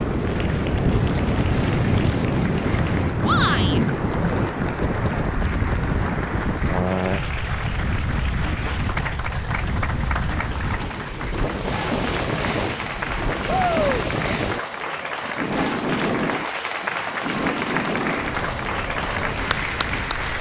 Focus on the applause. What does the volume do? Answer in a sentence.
The loudness of the applause goes up.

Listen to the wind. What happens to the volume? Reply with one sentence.
The volume of the wind goes down.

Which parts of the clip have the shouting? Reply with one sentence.
The shouting can be heard from 3.2 to 3.8 s and from 13.4 to 14.1 s.